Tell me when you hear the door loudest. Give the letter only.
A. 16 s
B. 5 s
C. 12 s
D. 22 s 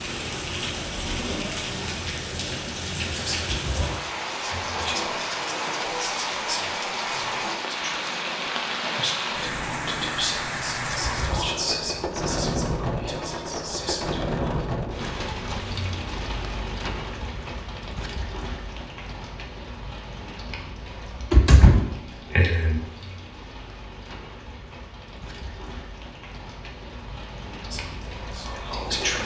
D.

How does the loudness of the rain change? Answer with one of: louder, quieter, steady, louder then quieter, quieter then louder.
quieter.